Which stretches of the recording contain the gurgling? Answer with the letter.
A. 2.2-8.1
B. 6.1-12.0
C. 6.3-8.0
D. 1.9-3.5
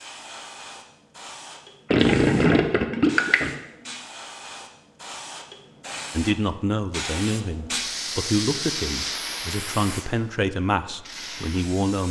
D.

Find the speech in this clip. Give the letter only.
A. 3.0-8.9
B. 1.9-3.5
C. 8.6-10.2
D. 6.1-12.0
D.